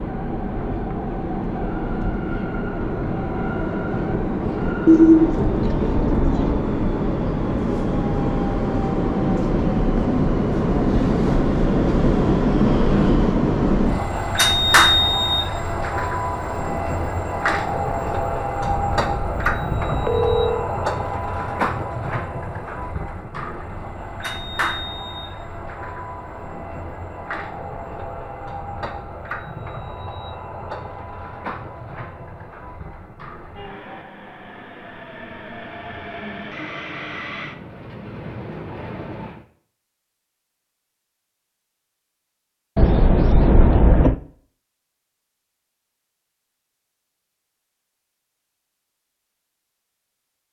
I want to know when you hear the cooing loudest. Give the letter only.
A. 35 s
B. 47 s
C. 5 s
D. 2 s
C.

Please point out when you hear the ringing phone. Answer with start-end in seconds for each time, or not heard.
5.4-6.6, 18.6-20.7, 42.8-44.2.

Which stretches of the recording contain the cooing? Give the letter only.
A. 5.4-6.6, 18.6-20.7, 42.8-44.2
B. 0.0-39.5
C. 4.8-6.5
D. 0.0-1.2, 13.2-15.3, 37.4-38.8
C.